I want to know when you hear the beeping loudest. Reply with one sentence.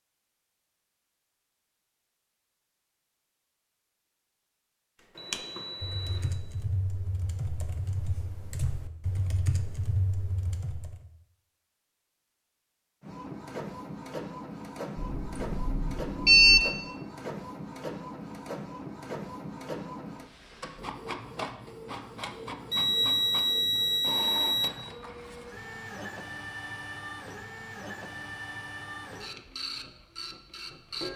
The volume of the beeping peaks at 16 seconds.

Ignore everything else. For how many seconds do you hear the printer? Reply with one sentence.
The printer can be heard for 18 seconds in total.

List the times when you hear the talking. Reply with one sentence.
You can't hear the talking here.